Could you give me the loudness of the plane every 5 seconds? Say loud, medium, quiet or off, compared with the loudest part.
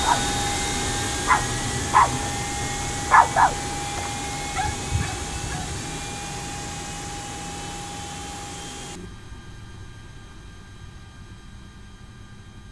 loud, medium, quiet.